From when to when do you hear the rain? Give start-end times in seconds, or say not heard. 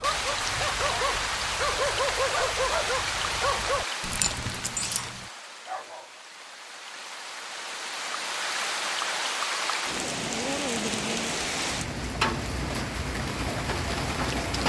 0.0-14.6.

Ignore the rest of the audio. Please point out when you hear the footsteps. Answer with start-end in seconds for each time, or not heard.
not heard.